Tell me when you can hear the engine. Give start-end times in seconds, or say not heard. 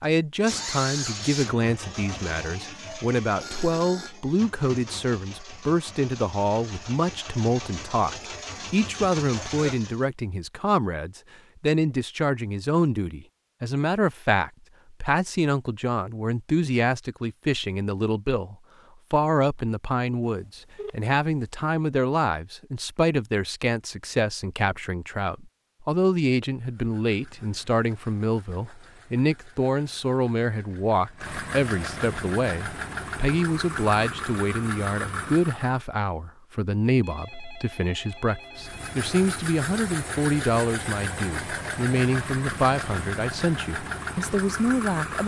0.5-10.1, 26.6-35.9, 38.5-45.2.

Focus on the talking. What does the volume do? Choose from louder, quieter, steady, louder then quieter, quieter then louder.
steady.